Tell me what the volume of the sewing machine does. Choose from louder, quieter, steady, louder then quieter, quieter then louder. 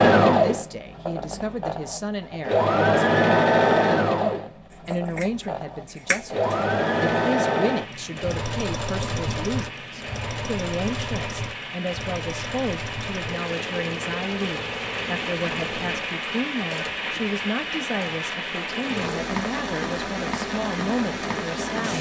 quieter.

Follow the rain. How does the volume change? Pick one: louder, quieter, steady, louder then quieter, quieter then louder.
louder.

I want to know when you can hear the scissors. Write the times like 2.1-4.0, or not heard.
4.7-6.7.